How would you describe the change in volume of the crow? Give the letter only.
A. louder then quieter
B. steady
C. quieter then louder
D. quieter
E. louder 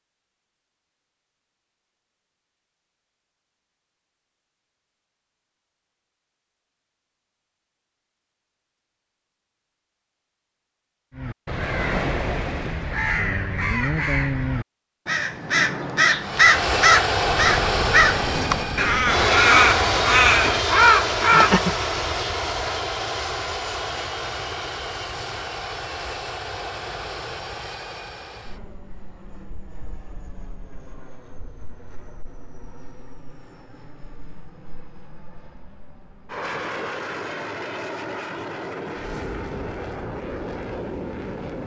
E.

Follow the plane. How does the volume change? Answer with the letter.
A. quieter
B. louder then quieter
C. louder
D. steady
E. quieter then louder
E.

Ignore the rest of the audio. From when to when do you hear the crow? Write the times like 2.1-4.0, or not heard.
11.2-21.8.